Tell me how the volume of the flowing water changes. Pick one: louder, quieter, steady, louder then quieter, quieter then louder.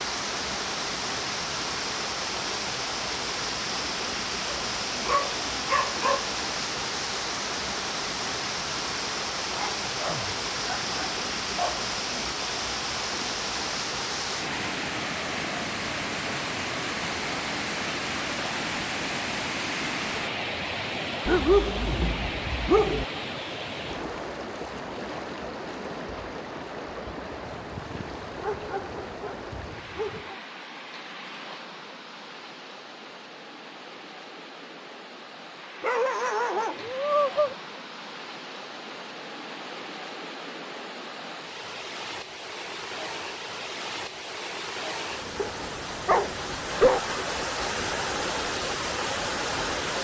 quieter then louder.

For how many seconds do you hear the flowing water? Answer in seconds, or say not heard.
50 s.